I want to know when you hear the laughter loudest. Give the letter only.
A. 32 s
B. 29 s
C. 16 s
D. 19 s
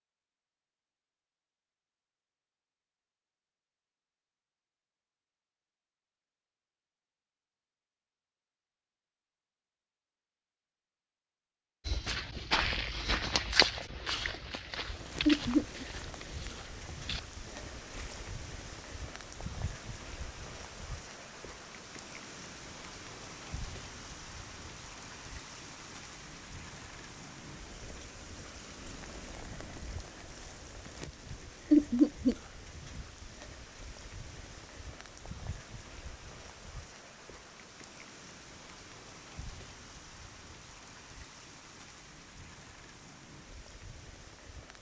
A.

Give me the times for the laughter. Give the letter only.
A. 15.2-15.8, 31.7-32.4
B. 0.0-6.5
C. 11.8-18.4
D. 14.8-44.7
A.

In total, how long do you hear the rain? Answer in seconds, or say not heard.
30 s.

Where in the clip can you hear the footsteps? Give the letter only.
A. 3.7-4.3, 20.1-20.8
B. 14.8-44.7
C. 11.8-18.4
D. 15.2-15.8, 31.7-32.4
C.